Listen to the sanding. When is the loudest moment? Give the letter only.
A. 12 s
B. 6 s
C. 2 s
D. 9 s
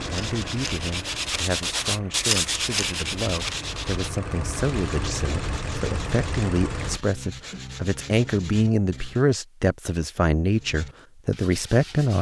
C.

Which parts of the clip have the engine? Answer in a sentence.
You can hear the engine from 0.0 to 7.0 s.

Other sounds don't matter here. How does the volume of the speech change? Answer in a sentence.
The volume of the speech goes up.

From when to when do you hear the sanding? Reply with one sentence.
The sanding can be heard from 0.0 to 9.2 s and from 10.5 to 12.1 s.